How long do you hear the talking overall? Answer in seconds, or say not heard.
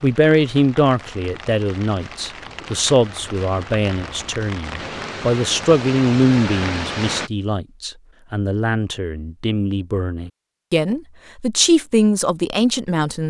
13 s.